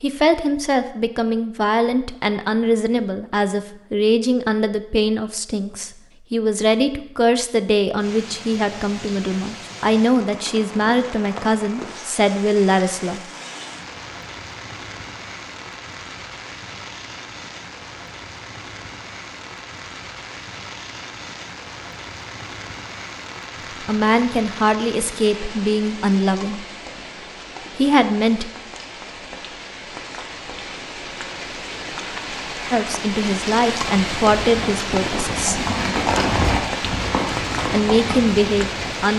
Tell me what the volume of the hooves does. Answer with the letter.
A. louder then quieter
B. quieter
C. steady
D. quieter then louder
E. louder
A.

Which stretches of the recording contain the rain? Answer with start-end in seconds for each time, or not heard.
8.0-39.1.